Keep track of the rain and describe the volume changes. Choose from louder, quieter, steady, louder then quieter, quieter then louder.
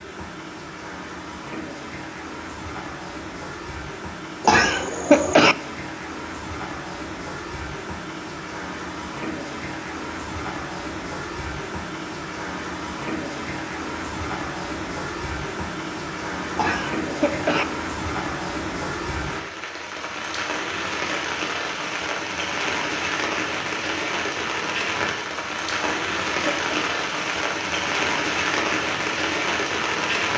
louder.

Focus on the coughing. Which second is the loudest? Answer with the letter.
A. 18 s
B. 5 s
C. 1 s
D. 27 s
B.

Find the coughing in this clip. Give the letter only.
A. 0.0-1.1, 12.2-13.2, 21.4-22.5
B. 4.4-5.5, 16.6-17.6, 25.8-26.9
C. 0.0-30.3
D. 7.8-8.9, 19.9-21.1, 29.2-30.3
B.